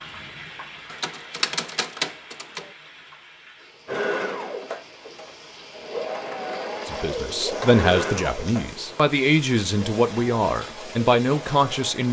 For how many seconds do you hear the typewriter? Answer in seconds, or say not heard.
2 s.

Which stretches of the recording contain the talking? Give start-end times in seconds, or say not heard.
6.8-12.0.